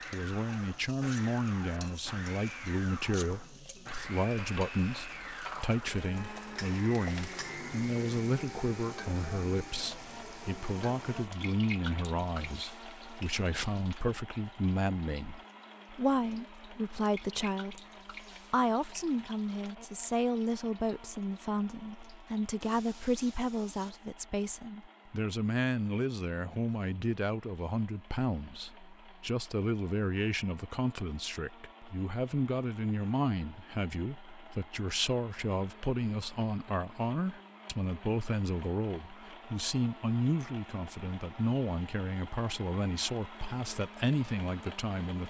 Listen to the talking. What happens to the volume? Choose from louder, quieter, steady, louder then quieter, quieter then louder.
steady.